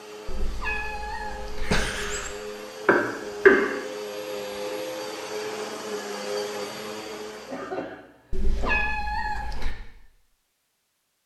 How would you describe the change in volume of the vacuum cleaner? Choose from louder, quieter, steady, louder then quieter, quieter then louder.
louder.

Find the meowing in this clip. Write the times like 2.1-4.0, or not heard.
0.2-2.3, 8.3-9.7.